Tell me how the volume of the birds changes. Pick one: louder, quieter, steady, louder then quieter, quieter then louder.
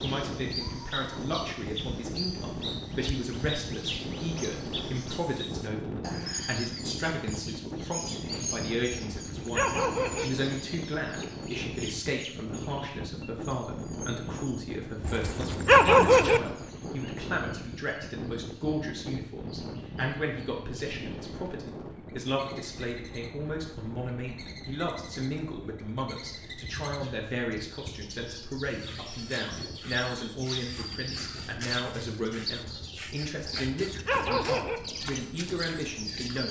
quieter then louder.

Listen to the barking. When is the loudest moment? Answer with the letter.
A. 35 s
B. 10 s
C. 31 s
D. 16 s
D.